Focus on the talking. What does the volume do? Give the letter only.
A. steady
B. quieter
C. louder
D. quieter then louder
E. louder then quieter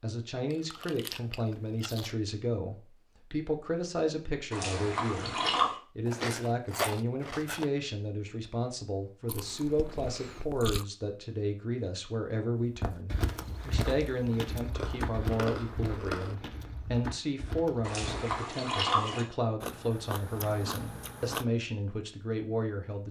A.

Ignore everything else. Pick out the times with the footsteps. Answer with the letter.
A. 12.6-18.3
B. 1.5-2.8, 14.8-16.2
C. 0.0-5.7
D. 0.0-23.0
A.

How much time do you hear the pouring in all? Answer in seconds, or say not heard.
3 s.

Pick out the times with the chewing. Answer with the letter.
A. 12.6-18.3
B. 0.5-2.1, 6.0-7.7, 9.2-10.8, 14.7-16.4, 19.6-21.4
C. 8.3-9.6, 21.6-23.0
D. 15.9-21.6
B.